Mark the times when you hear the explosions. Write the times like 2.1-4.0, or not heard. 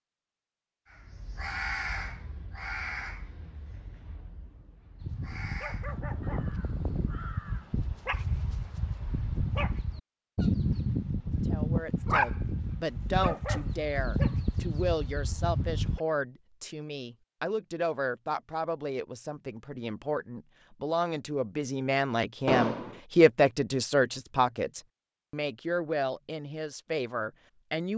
22.4-23.0.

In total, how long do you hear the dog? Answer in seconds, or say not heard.
11 s.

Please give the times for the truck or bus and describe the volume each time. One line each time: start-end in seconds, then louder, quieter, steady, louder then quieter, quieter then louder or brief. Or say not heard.
not heard.